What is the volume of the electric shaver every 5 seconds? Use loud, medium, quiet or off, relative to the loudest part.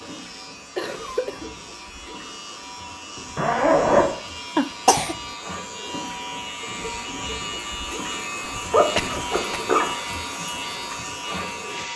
medium, loud, loud.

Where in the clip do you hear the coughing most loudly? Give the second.
5 s.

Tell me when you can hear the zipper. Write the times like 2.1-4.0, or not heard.
3.4-4.1, 8.5-9.8.